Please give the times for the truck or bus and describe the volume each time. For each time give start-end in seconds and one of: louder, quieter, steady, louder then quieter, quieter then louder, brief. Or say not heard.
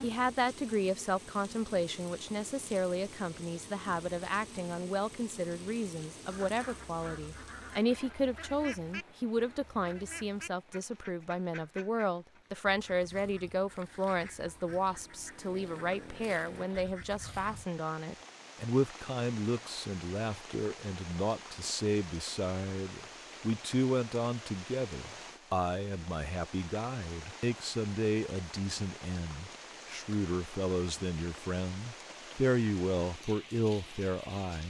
not heard.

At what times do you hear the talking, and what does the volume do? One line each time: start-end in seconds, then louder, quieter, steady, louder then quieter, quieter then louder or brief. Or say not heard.
0.0-34.6 steady.